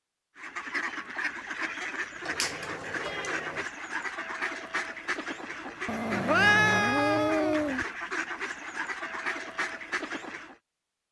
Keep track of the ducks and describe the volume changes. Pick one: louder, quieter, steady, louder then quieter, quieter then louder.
steady.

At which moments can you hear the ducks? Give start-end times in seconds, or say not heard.
0.3-10.6.